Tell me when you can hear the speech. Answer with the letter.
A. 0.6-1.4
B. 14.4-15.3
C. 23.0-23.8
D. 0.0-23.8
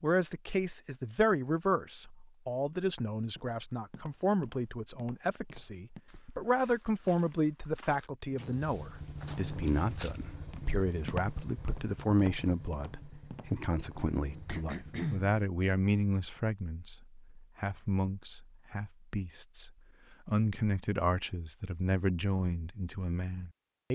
D.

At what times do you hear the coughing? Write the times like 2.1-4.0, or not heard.
14.4-15.3.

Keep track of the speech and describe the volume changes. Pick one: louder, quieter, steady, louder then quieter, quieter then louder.
steady.